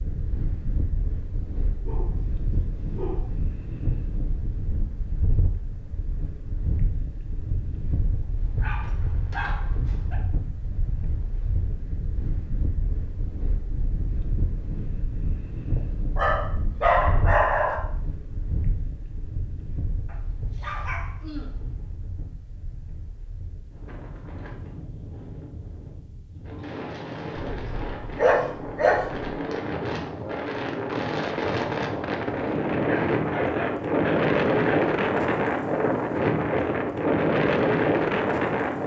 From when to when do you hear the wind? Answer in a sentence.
The wind can be heard from 0.0 to 38.8 s.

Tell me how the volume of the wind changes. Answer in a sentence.
The volume of the wind goes up.